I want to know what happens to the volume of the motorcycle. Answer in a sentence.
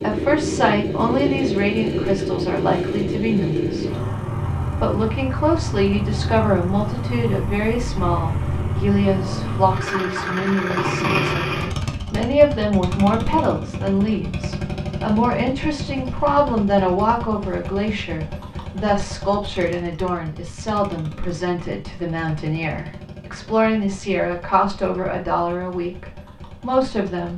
The loudness of the motorcycle goes down.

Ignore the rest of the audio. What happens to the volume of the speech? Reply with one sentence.
The loudness of the speech stays about the same.